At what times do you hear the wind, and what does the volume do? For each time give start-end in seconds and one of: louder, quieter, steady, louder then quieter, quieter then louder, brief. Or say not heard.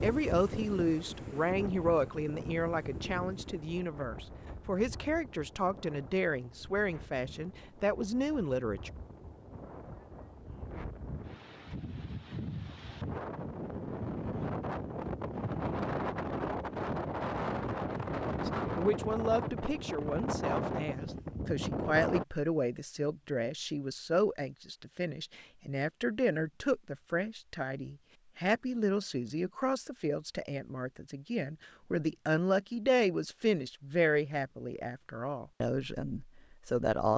0.0-22.2 quieter then louder.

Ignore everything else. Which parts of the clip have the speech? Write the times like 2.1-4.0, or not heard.
0.0-8.9, 18.4-37.1.